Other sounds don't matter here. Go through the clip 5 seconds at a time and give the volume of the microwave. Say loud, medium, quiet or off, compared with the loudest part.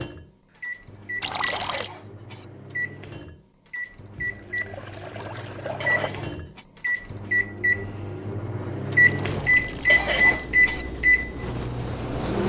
quiet, loud, loud.